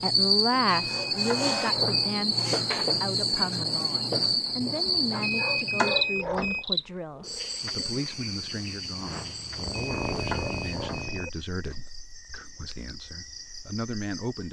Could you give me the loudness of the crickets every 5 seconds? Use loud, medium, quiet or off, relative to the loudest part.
loud, medium, quiet.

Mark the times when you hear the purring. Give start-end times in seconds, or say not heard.
6.1-11.3.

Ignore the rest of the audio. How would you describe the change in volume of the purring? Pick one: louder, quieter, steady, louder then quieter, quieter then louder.
louder.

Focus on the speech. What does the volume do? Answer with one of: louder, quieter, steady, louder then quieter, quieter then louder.
quieter.